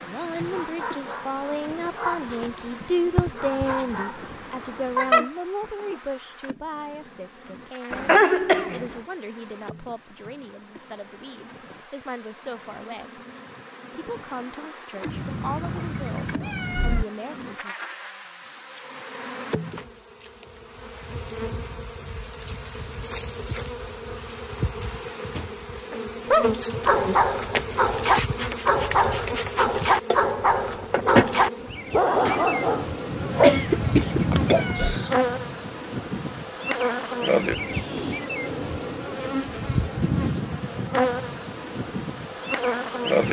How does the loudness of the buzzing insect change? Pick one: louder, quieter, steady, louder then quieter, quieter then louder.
louder.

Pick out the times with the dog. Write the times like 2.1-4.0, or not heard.
0.0-5.3, 25.4-34.9.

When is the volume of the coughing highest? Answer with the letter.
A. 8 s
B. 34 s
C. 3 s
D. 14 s
A.